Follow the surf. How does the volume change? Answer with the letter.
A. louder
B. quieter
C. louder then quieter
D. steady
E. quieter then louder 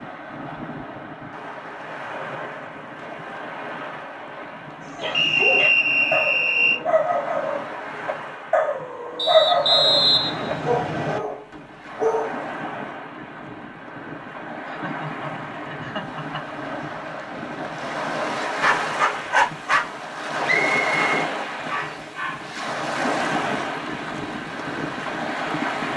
A.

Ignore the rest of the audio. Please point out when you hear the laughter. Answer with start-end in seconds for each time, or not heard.
14.7-16.4.